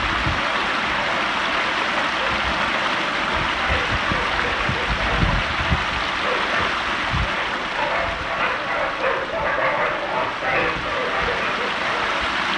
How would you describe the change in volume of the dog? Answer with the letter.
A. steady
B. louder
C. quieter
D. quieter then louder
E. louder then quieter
B.